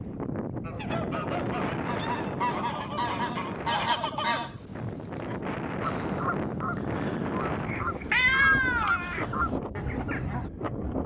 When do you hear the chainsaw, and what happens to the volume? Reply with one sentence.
The chainsaw can't be heard in this clip.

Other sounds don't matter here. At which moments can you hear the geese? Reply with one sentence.
The geese can be heard from 0.6 to 10.5 s.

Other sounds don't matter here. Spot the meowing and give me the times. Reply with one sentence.
You can hear the meowing from 7.7 to 9.2 s.